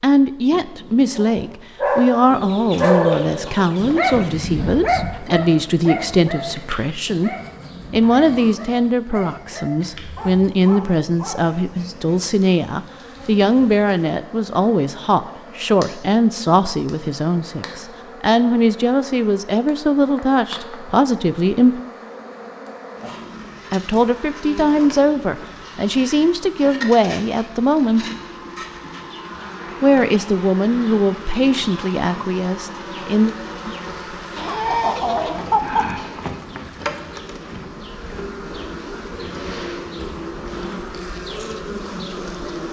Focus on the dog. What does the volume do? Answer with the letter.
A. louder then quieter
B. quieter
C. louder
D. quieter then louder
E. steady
B.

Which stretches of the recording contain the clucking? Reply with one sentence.
The clucking can be heard from 2.3 to 4.3 s and from 34.4 to 36.0 s.